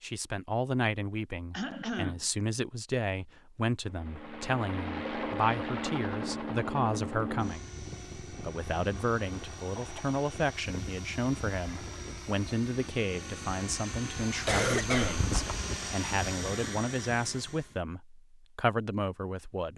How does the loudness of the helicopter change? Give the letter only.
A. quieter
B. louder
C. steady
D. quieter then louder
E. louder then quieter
D.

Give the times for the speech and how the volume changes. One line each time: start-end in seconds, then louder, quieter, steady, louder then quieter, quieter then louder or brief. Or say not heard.
0.0-19.7 steady.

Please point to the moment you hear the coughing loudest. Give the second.
15 s.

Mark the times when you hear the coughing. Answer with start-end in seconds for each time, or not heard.
1.5-2.2, 9.8-10.2, 14.4-15.7.